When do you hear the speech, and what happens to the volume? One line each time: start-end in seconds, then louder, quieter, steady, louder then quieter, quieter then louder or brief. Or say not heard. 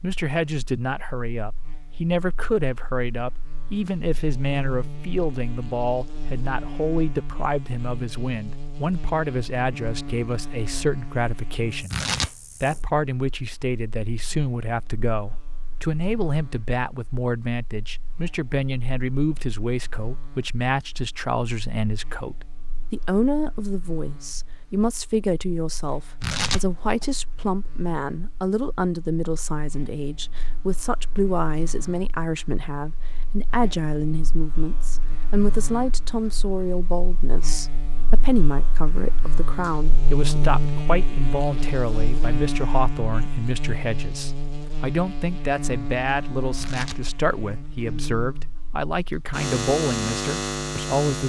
0.0-51.2 steady.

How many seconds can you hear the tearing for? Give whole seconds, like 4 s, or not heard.
2 s.